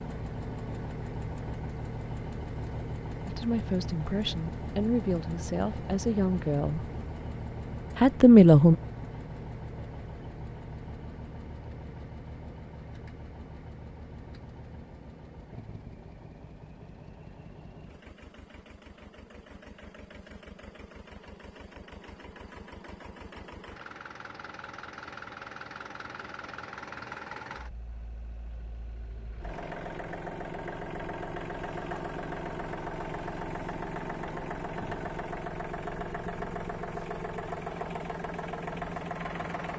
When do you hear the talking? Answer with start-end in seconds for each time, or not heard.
3.2-6.9, 8.0-8.8.